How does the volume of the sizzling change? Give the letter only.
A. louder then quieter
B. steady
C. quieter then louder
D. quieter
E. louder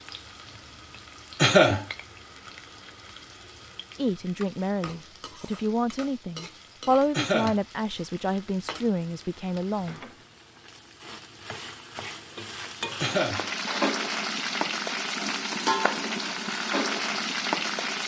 E.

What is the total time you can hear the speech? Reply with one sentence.
The speech can be heard for 6 seconds in total.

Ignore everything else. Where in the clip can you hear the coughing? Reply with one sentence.
The coughing can be heard from 1.4 to 1.9 s, from 7.2 to 7.6 s and from 13.0 to 13.4 s.